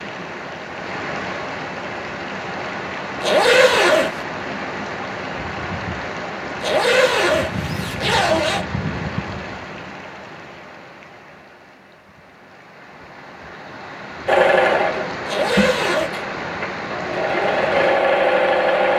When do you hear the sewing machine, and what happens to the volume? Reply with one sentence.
The sewing machine can be heard from 14.2 to 18.9 s, getting quieter then louder.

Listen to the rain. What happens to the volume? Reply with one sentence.
The loudness of the rain goes down, then up.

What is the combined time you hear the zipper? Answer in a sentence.
The zipper can be heard for 4 seconds in total.